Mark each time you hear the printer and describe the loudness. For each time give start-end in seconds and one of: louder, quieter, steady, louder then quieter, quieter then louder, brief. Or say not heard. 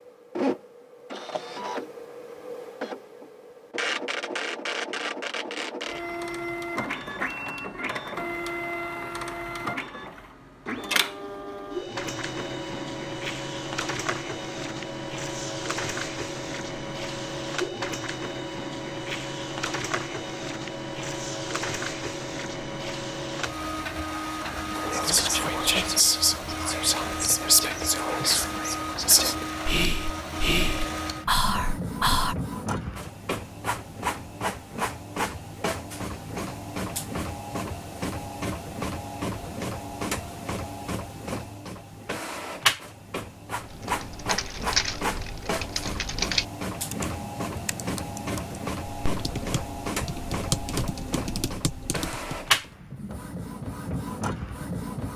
0.0-55.1 steady.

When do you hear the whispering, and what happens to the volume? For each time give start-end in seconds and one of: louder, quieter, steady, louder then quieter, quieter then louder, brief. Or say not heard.
24.8-32.4 steady.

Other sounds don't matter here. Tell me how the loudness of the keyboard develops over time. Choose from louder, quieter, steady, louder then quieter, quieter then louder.
quieter then louder.